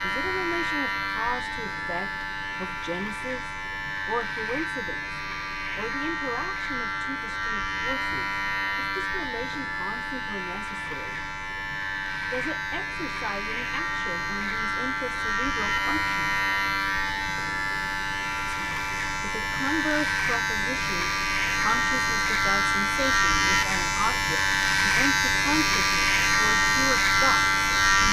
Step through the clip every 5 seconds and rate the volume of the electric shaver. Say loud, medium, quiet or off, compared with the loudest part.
medium, medium, medium, medium, loud, loud.